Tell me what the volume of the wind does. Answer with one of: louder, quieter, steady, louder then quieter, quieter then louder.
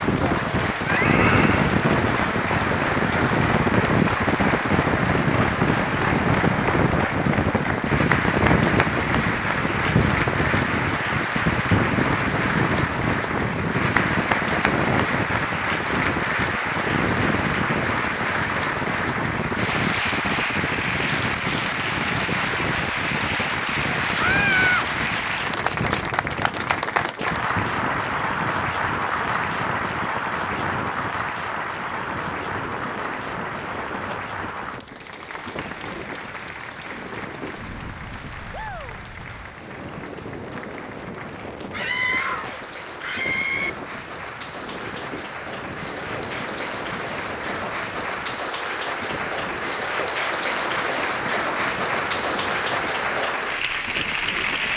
quieter.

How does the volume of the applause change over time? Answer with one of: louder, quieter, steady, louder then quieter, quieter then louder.
quieter then louder.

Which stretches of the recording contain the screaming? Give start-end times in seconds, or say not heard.
0.8-1.6, 24.1-24.9, 41.7-43.7.